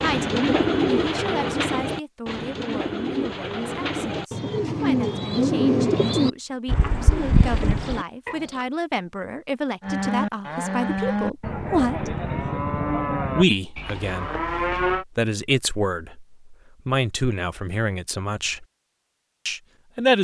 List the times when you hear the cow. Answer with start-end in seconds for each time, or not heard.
9.8-15.1.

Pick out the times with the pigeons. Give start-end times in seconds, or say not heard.
0.0-8.7.